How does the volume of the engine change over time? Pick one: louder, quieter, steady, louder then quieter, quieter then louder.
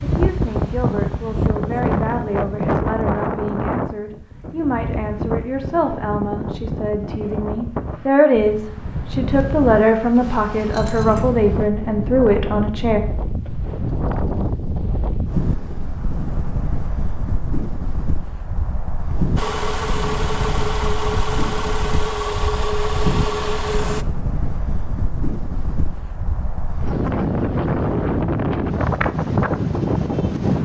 steady.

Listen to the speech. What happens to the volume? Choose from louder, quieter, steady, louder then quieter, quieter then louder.
louder.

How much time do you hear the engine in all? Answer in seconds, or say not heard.
5 s.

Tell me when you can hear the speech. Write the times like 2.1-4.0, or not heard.
0.0-13.0.